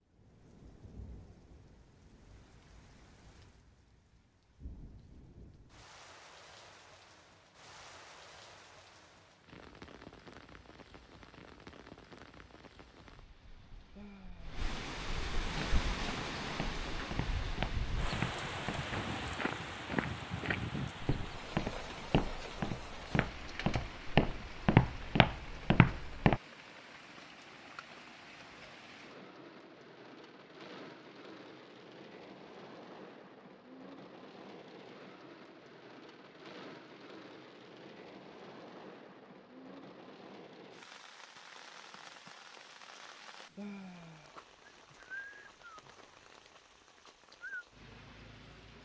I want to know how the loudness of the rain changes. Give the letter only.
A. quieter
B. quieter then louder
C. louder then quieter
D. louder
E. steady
C.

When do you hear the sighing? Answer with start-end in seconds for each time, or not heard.
13.9-14.6, 43.5-44.4.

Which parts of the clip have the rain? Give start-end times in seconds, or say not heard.
0.0-48.8.